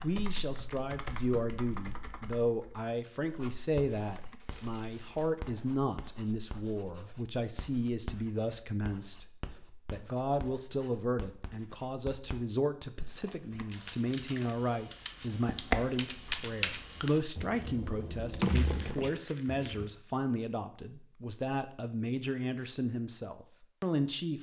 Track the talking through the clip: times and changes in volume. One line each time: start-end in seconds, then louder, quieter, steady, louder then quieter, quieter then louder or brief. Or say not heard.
0.0-24.3 steady.